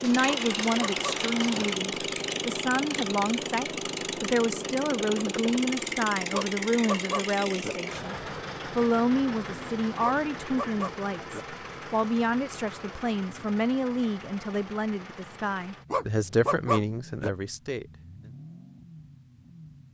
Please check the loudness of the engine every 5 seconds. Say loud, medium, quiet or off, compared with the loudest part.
loud, loud, medium, quiet.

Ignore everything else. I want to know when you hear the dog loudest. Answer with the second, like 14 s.
17 s.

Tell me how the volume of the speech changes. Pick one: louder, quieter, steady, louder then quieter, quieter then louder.
steady.